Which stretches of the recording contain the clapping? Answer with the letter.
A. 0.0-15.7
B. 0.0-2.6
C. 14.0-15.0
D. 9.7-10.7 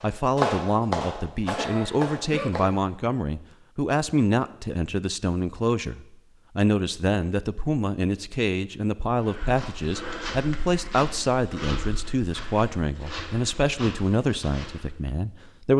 B.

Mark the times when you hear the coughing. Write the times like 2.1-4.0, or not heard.
1.6-2.5.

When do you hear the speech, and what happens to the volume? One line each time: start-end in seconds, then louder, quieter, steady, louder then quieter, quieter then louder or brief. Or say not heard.
0.0-15.7 steady.